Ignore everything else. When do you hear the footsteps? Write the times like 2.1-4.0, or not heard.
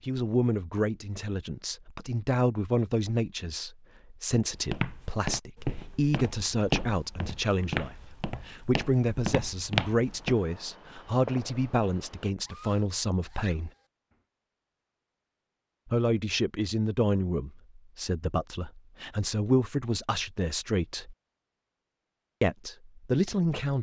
4.5-10.3.